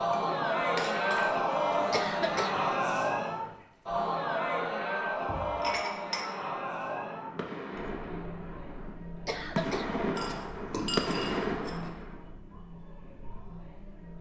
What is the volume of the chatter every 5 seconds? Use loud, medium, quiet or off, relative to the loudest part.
loud, medium, quiet.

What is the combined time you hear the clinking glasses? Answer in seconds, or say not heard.
4 s.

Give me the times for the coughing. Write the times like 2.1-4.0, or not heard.
1.9-2.6, 9.2-9.9.